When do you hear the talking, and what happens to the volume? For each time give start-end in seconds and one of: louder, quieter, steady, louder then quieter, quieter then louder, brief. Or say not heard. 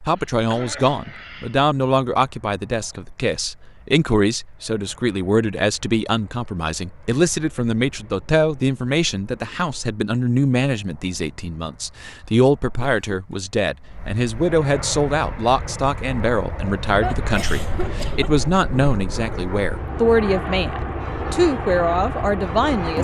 0.0-22.9 steady.